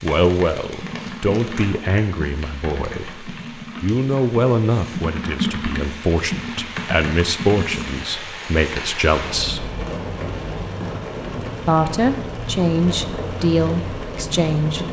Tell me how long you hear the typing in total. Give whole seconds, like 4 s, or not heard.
7 s.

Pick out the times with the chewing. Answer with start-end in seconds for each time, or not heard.
not heard.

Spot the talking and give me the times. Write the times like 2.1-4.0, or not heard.
0.0-9.7, 11.7-14.8.